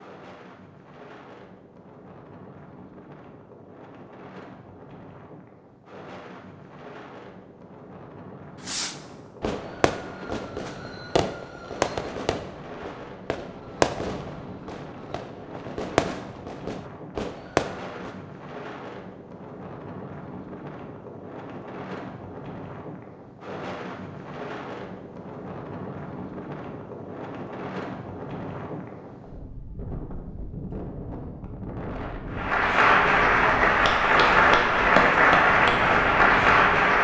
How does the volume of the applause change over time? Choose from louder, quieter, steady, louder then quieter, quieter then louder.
steady.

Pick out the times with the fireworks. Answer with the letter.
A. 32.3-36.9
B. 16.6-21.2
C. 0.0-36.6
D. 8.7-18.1
D.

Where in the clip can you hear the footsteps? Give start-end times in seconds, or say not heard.
not heard.